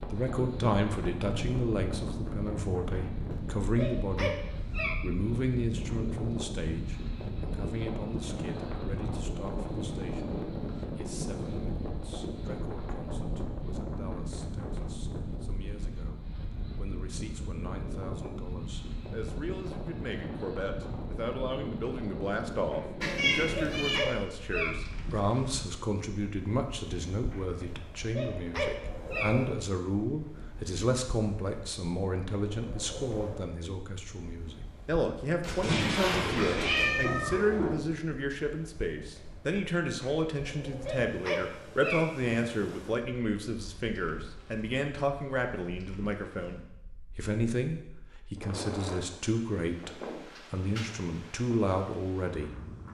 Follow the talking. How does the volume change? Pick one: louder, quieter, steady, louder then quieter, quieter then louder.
quieter then louder.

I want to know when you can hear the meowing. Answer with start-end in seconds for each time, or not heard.
23.0-24.0, 35.4-37.9.